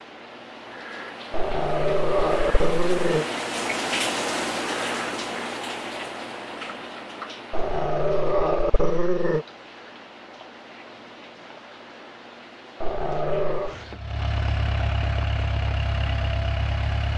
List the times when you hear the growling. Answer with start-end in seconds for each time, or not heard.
1.3-3.2, 7.5-9.4, 12.8-13.8.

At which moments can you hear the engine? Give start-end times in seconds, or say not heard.
13.7-17.1.